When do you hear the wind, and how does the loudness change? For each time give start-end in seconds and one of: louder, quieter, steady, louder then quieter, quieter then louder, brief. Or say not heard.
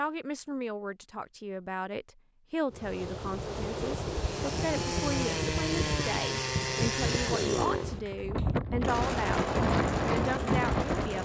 2.7-11.2 louder.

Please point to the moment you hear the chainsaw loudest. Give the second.
7 s.